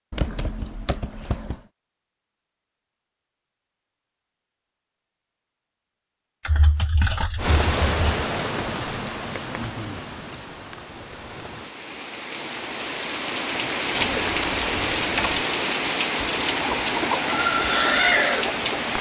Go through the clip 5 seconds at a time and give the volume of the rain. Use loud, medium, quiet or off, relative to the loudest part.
off, medium, medium, loud.